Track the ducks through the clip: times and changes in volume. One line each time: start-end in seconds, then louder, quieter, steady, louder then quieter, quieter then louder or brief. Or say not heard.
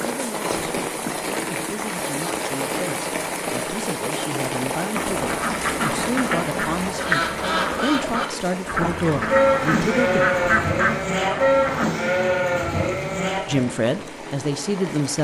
4.9-11.9 steady.